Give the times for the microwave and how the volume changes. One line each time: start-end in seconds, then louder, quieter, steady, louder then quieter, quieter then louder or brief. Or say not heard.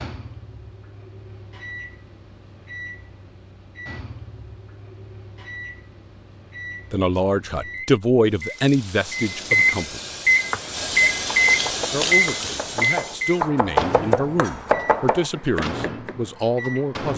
0.0-17.1 louder then quieter.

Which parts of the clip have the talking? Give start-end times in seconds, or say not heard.
6.9-10.0, 11.9-17.1.